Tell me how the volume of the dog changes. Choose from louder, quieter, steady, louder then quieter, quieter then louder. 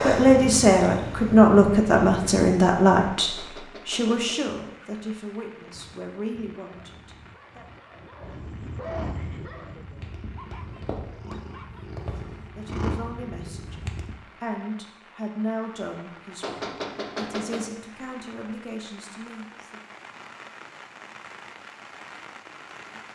louder then quieter.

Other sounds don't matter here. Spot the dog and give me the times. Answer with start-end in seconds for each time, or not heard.
5.7-11.9.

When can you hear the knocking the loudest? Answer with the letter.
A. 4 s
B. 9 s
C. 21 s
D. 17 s
D.